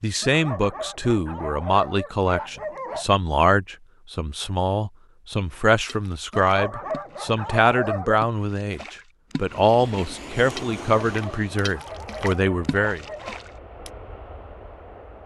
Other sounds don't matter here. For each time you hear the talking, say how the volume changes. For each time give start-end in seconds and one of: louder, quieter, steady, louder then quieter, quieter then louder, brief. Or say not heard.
0.0-13.0 steady.